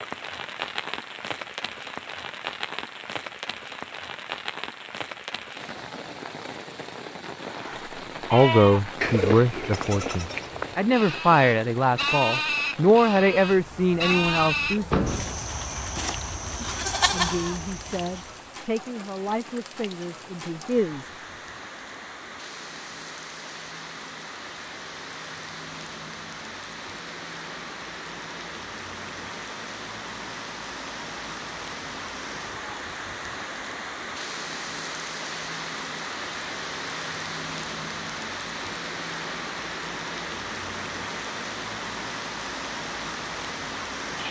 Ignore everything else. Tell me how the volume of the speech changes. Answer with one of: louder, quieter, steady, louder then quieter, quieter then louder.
quieter.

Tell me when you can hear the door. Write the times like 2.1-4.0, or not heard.
14.0-15.4.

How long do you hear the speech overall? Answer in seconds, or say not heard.
11 s.